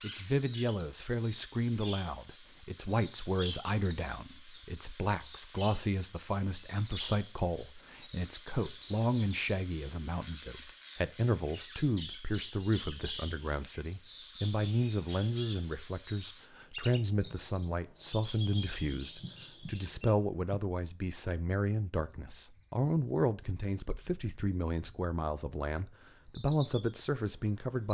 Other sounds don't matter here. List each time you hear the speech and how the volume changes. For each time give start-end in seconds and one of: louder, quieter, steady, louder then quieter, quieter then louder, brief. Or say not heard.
0.0-27.8 steady.